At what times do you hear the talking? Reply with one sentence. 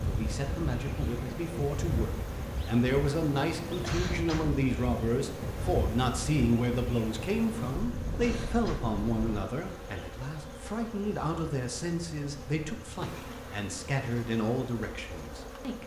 The talking can be heard from 0.0 to 15.8 s.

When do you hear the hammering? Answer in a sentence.
You can't hear the hammering here.